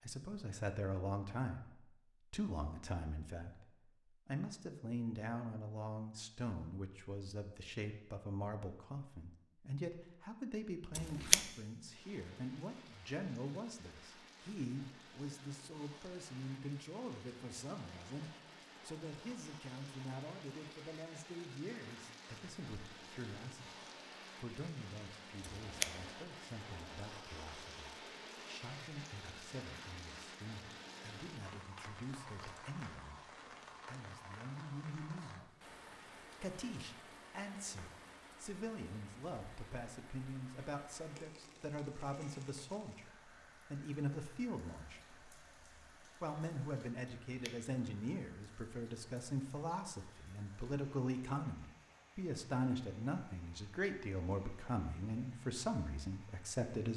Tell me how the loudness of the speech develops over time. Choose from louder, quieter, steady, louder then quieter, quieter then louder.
quieter then louder.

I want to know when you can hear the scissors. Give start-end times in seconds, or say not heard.
10.9-11.4, 25.4-25.9, 47.0-47.7.